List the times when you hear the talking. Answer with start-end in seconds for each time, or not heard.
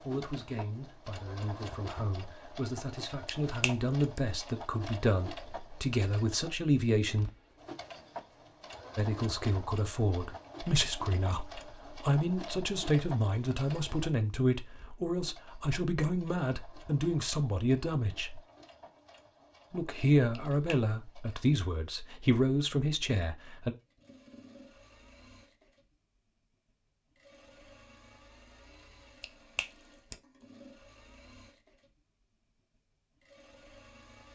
0.0-7.3, 8.9-18.4, 19.7-23.8.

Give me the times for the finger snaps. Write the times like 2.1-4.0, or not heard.
3.2-4.2, 20.3-20.8, 29.2-30.1.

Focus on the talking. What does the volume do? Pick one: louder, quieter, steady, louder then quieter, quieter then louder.
louder.